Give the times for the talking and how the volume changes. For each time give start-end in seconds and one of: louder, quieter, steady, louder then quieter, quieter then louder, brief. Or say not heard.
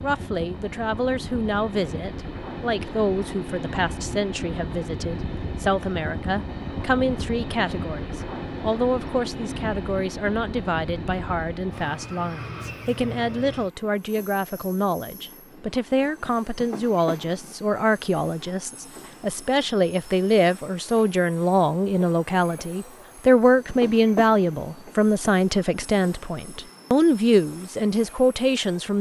0.0-28.9 louder.